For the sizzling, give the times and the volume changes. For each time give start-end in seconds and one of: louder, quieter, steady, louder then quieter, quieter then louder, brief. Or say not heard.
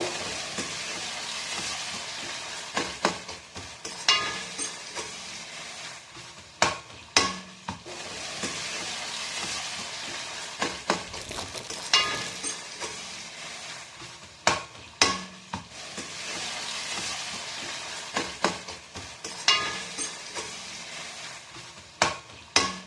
0.0-22.8 steady.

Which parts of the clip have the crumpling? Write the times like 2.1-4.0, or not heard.
11.1-12.5.